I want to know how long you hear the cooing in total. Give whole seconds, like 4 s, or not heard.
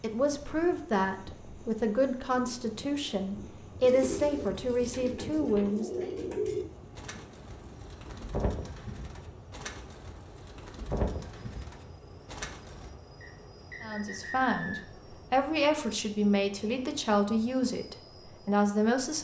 9 s.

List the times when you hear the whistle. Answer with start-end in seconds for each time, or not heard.
13.2-14.8.